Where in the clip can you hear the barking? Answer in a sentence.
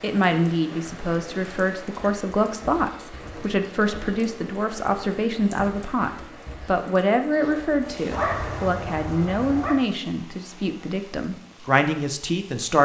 The barking can be heard from 8.1 to 9.8 s.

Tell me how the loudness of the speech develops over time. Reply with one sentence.
The loudness of the speech stays about the same.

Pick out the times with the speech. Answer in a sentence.
The speech can be heard from 0.0 to 12.8 s.